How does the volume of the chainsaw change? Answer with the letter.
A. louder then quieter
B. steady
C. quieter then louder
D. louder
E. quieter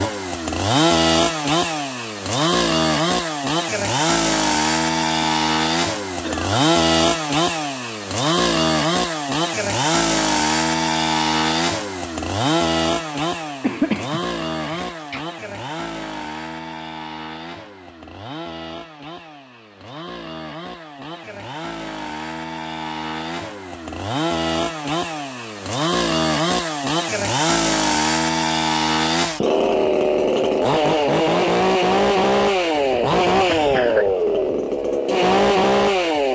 C.